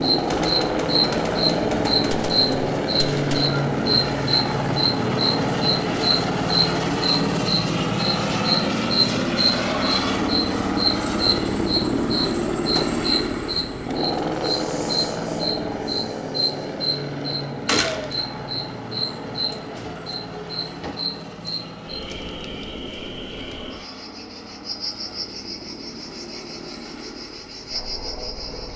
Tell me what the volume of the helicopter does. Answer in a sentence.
The loudness of the helicopter goes down.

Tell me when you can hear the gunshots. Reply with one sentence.
The gunshots can be heard from 0.3 to 3.5 s and from 17.6 to 18.1 s.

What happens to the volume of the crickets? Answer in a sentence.
The loudness of the crickets goes down.